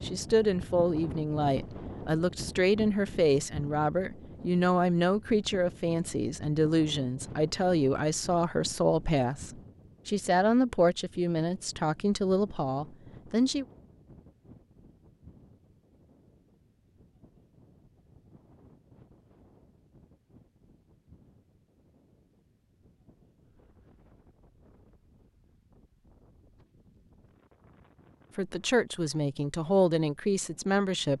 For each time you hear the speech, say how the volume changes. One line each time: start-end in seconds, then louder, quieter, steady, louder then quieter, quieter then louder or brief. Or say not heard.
0.0-13.7 steady
28.4-31.1 brief.